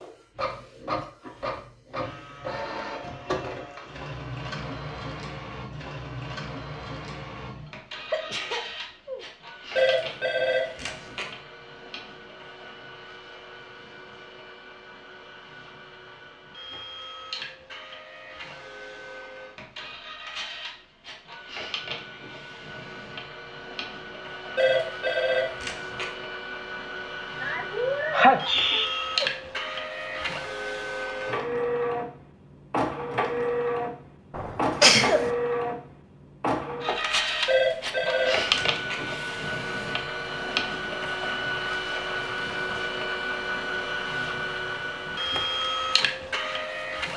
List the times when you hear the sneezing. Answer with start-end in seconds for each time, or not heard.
8.1-9.2, 27.4-29.3, 34.3-35.3.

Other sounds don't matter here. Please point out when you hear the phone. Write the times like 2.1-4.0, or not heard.
9.8-11.2, 24.6-26.1, 37.5-39.0.